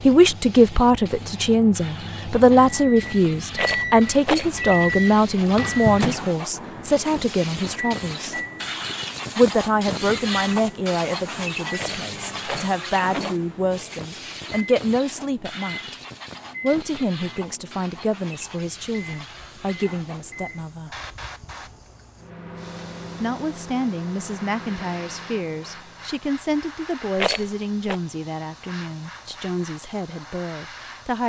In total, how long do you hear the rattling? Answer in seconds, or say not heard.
3 s.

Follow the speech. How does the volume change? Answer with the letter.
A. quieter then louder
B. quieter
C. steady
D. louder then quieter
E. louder
B.